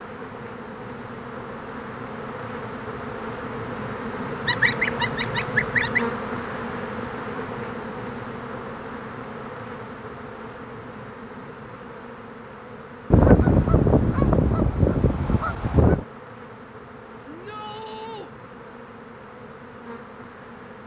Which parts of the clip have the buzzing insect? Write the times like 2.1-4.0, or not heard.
0.0-20.8.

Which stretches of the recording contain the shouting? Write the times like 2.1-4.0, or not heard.
17.2-18.3.